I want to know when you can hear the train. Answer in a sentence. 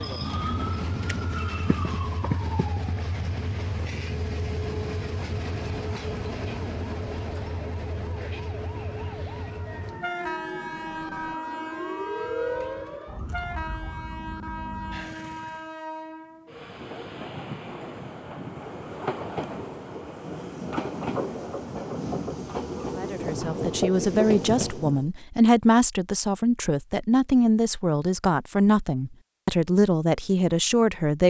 You can hear the train from 0.0 to 25.1 s.